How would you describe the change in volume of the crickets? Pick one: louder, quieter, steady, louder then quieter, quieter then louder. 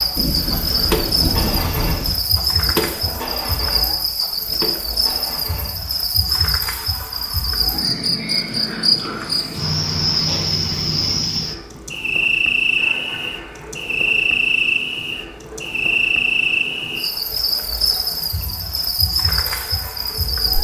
steady.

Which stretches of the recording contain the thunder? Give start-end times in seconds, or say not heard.
0.1-2.1.